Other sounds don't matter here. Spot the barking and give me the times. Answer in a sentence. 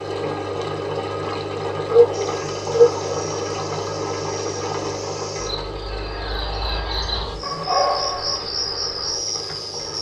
The barking can be heard from 1.9 to 3.0 s and from 7.4 to 8.4 s.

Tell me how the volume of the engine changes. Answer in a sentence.
The volume of the engine goes down.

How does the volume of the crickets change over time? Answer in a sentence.
The volume of the crickets goes up.